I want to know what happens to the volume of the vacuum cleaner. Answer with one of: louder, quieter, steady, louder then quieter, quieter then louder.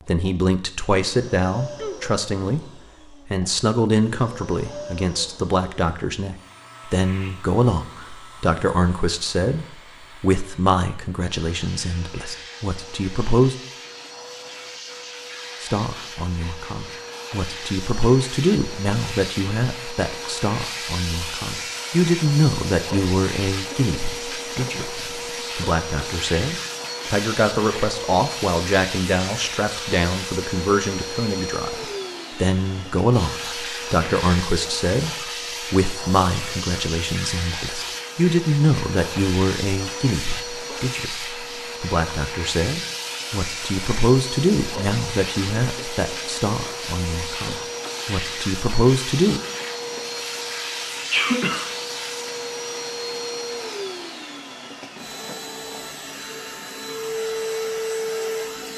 louder.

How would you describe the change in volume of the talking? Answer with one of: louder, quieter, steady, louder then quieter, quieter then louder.
steady.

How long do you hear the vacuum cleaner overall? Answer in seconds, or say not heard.
59 s.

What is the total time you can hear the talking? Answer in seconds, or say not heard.
47 s.